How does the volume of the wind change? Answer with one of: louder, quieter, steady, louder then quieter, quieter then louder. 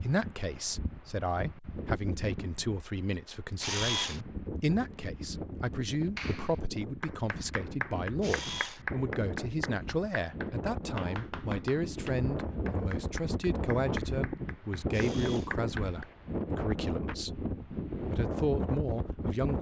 louder.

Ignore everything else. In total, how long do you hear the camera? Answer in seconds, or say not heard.
2 s.